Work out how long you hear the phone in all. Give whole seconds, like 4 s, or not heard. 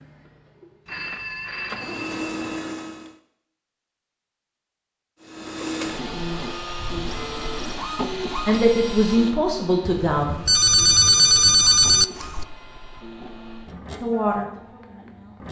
4 s.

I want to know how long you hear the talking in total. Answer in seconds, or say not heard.
3 s.